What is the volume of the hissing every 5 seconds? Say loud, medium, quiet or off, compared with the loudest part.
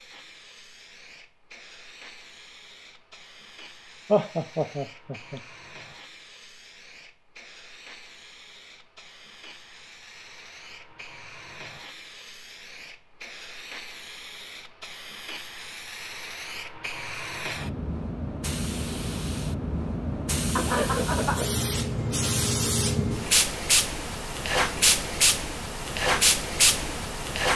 quiet, quiet, quiet, medium, loud, loud.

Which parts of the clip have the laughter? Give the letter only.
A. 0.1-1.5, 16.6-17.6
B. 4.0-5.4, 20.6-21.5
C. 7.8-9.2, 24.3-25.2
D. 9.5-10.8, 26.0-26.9
B.